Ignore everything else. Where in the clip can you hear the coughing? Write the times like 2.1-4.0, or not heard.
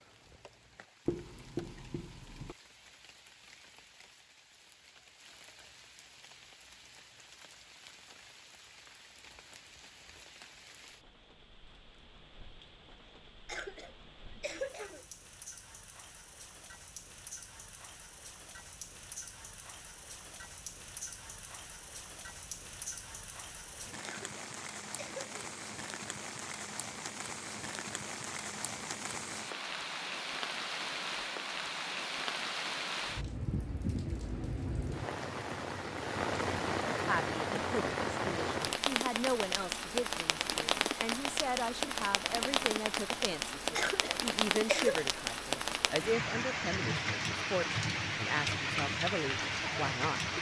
13.4-15.1, 24.0-25.6, 43.8-45.1.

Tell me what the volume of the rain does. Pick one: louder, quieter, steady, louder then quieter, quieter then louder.
louder.